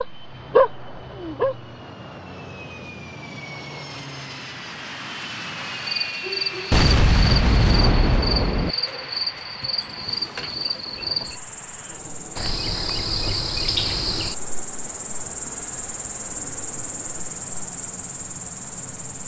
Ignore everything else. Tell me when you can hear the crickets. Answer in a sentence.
The crickets can be heard from 5.9 to 19.2 s.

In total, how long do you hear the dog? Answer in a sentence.
The dog can be heard for 2 seconds in total.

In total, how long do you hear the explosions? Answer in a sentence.
You can hear the explosions for 2 seconds altogether.